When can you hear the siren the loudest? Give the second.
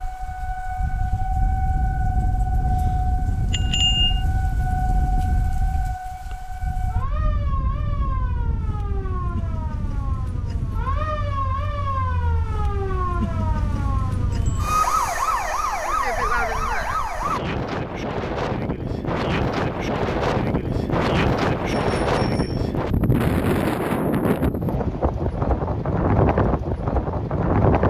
15 s.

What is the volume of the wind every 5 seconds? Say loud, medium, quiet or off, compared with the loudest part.
medium, quiet, quiet, medium, loud, loud.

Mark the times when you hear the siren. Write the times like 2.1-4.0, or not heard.
0.0-17.4.